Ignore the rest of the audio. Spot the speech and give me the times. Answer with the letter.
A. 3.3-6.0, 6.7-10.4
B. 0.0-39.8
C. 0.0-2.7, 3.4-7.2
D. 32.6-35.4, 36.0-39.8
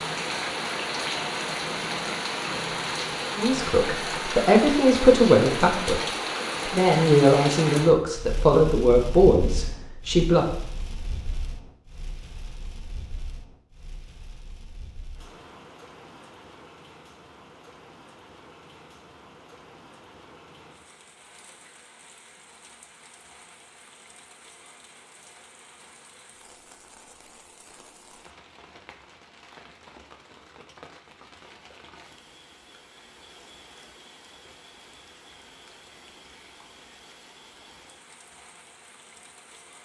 A.